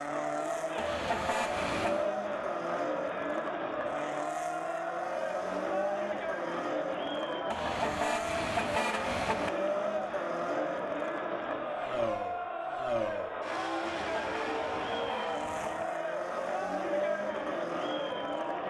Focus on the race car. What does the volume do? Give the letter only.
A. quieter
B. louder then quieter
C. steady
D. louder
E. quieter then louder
C.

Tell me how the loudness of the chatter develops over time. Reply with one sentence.
The volume of the chatter stays about the same.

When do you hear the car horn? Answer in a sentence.
The car horn can be heard from 0.8 to 2.0 s, from 7.5 to 9.5 s and from 13.9 to 15.8 s.